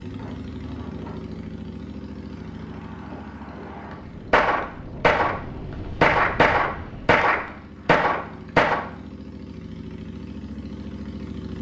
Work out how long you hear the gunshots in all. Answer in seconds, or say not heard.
4 s.